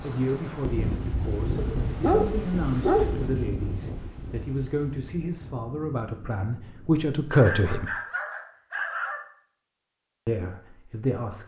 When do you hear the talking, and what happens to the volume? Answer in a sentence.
The talking can be heard from 0.0 to 7.9 s, getting louder; and briefly from 10.2 to 11.4 s.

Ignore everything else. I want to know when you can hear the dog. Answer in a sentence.
The dog can be heard from 1.6 to 3.2 s and from 7.3 to 9.2 s.